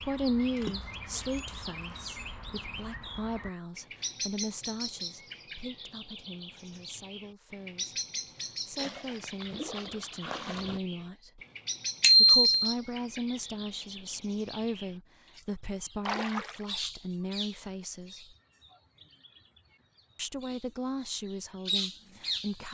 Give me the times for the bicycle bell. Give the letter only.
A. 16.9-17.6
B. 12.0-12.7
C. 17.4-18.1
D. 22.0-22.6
B.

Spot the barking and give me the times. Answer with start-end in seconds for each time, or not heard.
not heard.